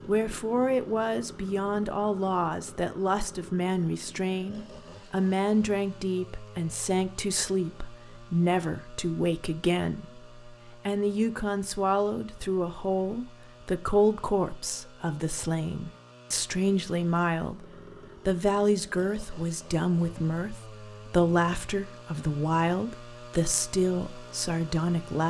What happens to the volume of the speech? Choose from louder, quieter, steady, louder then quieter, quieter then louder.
steady.